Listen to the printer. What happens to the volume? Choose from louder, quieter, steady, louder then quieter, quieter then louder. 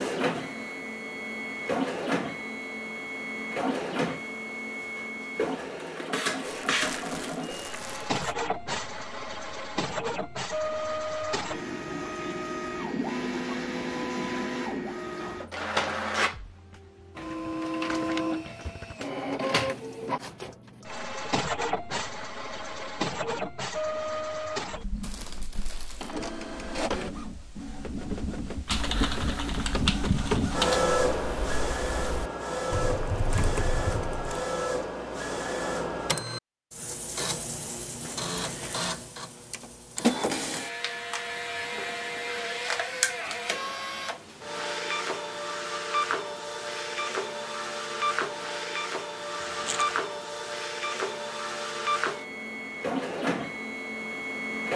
steady.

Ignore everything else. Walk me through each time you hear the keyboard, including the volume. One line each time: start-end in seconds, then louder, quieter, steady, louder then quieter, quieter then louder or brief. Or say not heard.
28.6-34.4 quieter then louder.